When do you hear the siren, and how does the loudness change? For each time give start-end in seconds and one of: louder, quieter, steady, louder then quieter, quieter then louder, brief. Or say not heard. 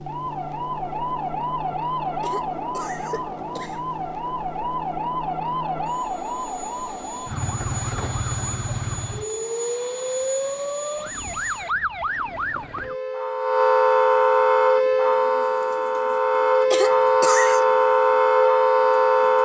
0.0-19.4 louder.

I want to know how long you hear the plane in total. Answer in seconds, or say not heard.
12 s.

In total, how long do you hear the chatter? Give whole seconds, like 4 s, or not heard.
not heard.